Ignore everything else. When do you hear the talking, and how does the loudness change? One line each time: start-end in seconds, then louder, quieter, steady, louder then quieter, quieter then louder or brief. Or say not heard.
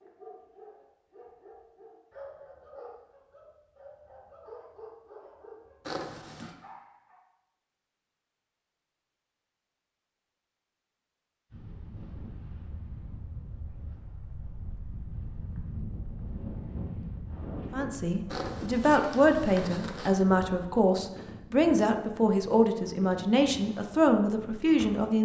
17.7-25.2 steady.